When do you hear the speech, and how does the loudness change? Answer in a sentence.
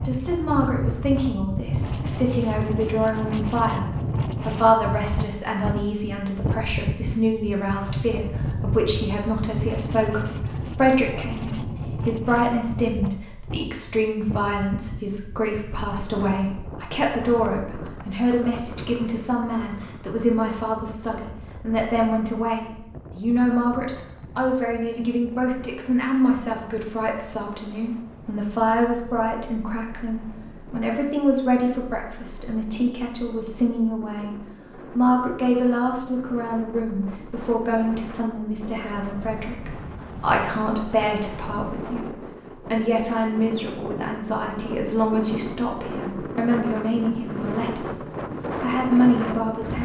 You can hear the speech from 0.0 to 49.8 s, at a steady volume.